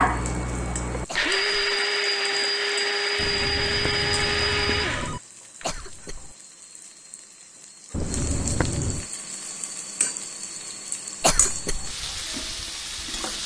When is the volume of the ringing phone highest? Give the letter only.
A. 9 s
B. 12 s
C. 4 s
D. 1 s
A.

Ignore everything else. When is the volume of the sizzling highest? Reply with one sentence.
The volume of the sizzling peaks at 12 seconds.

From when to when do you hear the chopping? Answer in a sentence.
You can't hear the chopping here.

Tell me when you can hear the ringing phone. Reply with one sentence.
You can hear the ringing phone from 3.1 to 5.2 s and from 7.9 to 9.1 s.